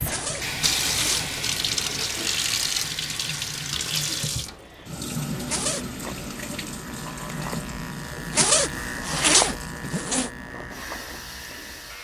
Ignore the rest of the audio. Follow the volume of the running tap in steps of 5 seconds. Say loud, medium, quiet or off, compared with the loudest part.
loud, medium, quiet.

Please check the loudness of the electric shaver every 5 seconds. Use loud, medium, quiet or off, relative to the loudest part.
off, loud, medium.